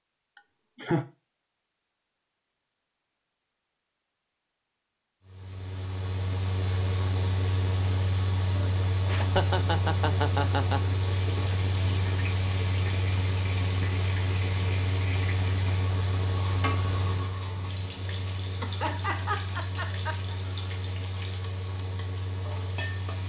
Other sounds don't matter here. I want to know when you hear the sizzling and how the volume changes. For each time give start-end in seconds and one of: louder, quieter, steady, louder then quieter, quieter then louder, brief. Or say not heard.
10.9-23.2 steady.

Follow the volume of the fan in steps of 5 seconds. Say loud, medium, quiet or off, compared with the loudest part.
off, loud, loud, loud, medium.